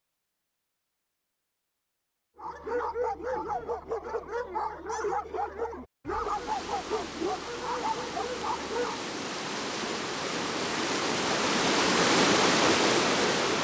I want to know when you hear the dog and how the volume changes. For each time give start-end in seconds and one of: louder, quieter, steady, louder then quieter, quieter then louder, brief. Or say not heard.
2.4-9.1 steady.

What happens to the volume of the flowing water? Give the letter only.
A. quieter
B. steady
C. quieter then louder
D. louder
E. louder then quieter
D.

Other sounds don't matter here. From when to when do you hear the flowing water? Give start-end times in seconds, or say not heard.
6.0-13.5.